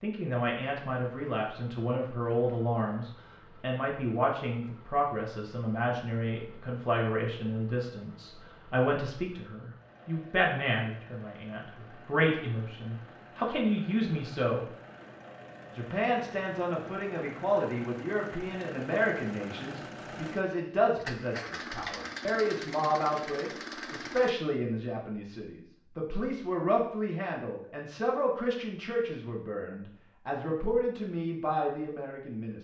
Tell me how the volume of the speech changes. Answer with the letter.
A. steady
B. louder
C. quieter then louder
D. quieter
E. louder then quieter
A.